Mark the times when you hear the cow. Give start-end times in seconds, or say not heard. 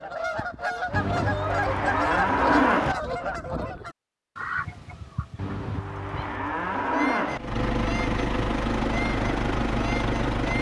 0.9-3.0, 5.3-7.4.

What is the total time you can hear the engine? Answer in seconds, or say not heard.
3 s.